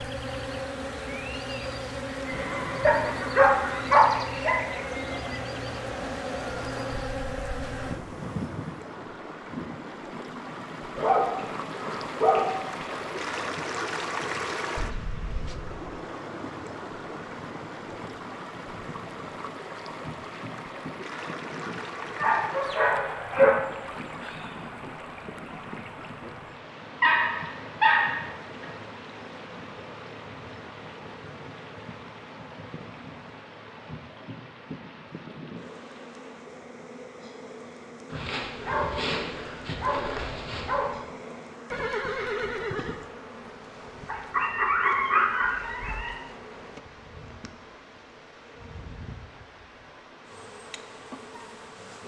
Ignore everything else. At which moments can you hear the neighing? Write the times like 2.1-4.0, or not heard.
2.3-3.9, 41.7-43.0.